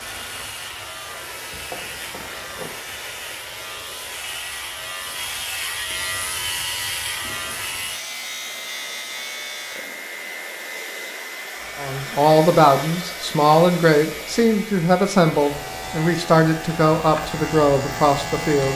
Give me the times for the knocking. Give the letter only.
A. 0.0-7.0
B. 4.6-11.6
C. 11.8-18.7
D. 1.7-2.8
D.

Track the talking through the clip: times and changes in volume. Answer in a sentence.
You can hear the talking from 11.8 to 18.7 s, at a steady volume.